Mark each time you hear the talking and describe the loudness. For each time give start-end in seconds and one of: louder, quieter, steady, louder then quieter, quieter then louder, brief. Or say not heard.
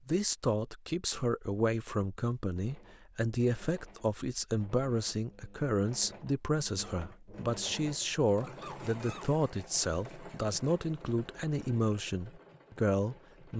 0.1-13.5 steady.